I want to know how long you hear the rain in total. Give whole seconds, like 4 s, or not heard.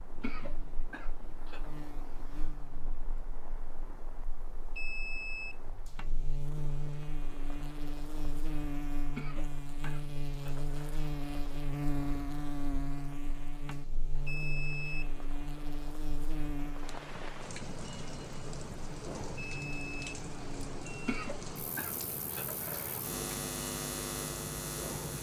25 s.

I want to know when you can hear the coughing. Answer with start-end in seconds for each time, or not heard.
0.2-1.7, 9.2-11.1, 21.1-23.0.